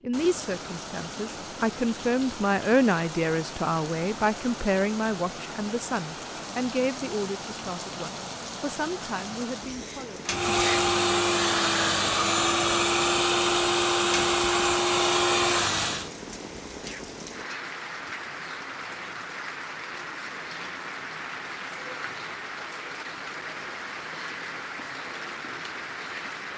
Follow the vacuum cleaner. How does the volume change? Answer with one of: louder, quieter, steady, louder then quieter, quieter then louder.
steady.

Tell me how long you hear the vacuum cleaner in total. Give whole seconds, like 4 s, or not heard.
6 s.